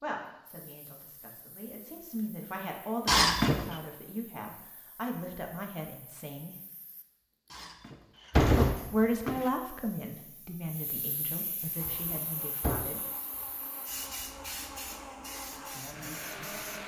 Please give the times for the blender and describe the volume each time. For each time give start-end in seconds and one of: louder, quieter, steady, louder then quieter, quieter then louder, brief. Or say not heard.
11.7-16.8 louder.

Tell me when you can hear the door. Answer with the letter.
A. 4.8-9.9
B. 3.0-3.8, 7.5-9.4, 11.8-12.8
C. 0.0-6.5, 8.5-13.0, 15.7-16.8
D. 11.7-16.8
B.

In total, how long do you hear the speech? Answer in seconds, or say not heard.
12 s.